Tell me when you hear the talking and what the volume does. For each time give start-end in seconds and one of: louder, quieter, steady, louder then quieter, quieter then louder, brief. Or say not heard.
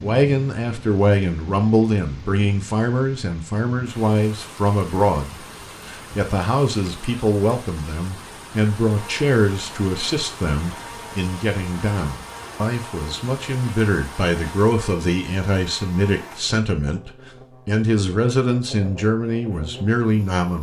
0.0-20.5 steady.